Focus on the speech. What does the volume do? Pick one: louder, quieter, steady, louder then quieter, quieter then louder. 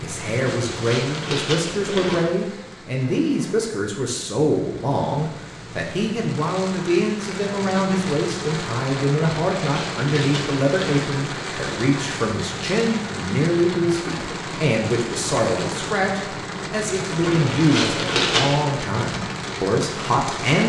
steady.